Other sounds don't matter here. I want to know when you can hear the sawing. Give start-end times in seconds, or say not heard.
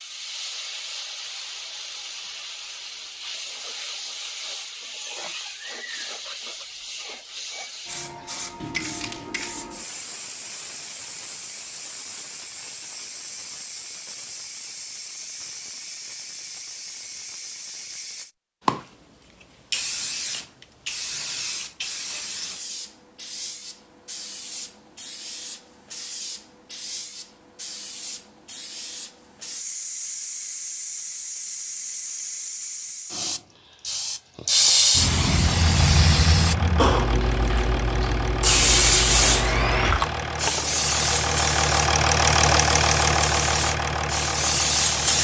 39.1-40.0.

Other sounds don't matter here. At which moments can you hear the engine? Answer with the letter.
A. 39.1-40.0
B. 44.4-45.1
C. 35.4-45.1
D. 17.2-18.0
C.